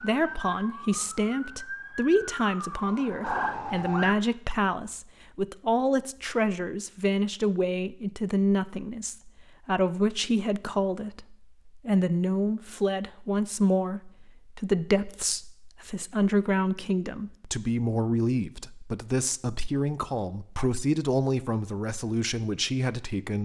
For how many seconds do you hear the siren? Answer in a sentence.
The siren can be heard for 4 seconds in total.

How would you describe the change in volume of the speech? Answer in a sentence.
The volume of the speech stays about the same.